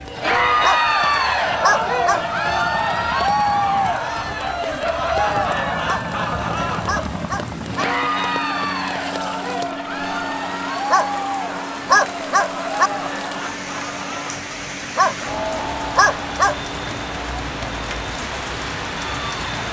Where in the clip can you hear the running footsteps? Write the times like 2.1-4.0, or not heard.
not heard.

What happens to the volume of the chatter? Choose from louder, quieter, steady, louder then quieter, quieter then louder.
quieter.